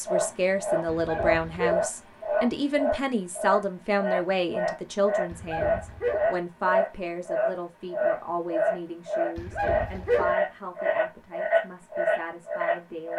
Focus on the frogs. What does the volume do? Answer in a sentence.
The loudness of the frogs stays about the same.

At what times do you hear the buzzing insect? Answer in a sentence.
You can't hear the buzzing insect here.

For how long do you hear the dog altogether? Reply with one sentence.
You can hear the dog for 3 seconds altogether.